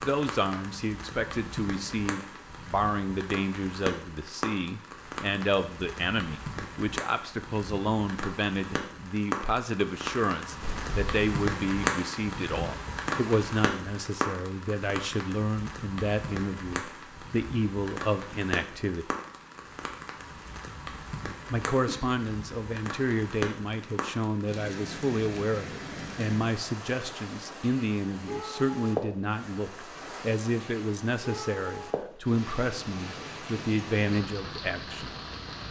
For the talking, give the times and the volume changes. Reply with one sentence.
The talking can be heard from 0.0 to 19.1 s, at a steady volume; and from 21.5 to 35.1 s, at a steady volume.